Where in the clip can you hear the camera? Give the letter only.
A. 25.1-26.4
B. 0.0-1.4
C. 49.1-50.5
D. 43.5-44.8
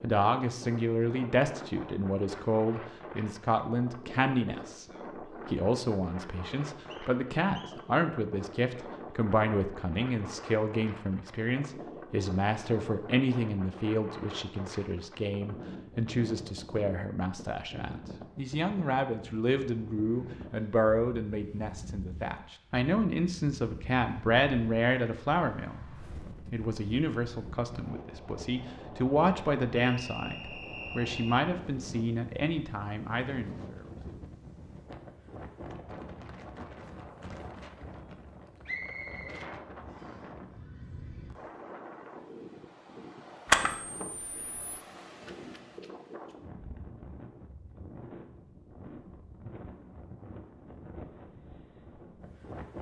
D.